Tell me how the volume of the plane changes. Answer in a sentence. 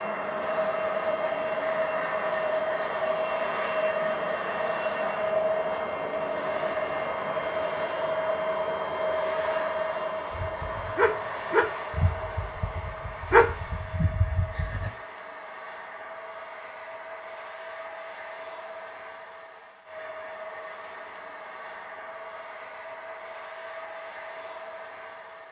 The volume of the plane goes down.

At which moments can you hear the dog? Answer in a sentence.
The dog can be heard from 10.3 to 14.9 s.